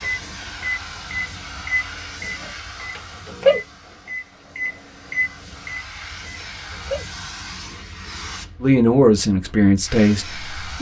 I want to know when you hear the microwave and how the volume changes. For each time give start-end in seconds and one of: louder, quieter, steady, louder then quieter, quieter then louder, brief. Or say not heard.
0.0-7.0 louder then quieter.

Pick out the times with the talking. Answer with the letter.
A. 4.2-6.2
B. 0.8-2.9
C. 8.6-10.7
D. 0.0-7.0
C.